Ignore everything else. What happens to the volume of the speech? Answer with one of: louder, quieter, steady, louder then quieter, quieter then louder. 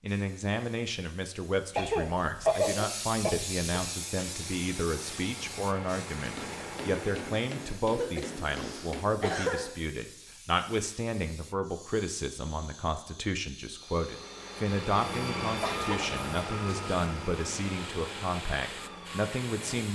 steady.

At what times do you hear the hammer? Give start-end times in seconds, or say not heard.
6.3-9.1.